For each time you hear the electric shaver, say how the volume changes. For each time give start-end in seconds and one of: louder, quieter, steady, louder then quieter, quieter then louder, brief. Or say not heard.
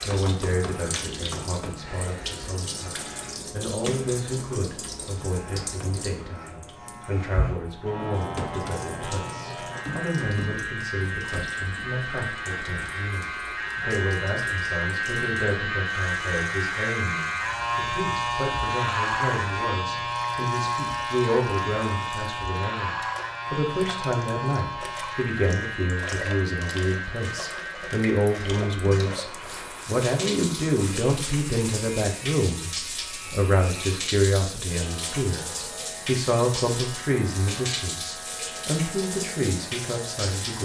0.0-40.5 louder then quieter.